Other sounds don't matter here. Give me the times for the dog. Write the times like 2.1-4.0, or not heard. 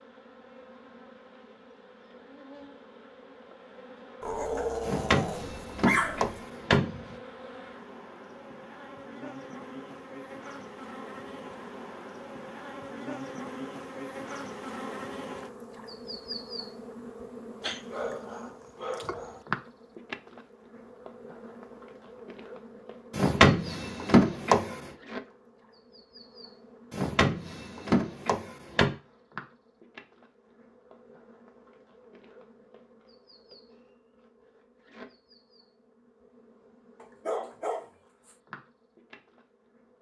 4.2-6.4, 17.6-19.4, 37.0-38.4.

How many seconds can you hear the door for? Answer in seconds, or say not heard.
6 s.